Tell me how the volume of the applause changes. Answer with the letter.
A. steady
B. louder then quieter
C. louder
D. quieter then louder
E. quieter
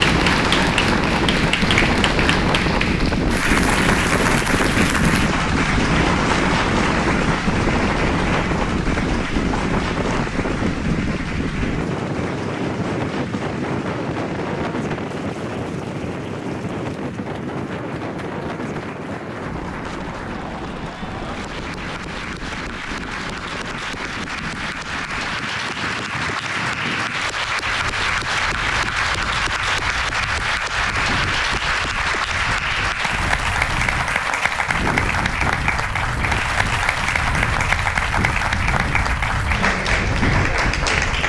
D.